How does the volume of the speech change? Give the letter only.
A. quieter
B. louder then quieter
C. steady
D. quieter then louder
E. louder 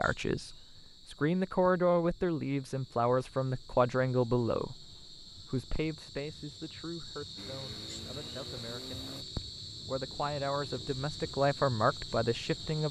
D.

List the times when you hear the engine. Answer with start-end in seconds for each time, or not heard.
7.3-9.2.